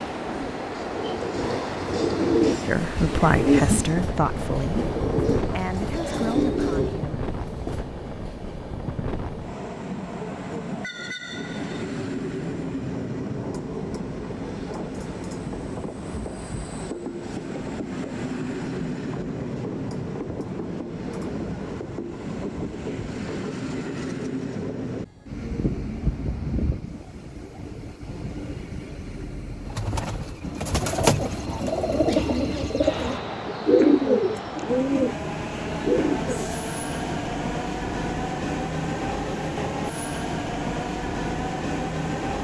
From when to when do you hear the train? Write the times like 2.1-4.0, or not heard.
0.0-42.3.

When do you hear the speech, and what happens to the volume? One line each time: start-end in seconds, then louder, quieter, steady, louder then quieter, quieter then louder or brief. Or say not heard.
2.6-7.2 quieter.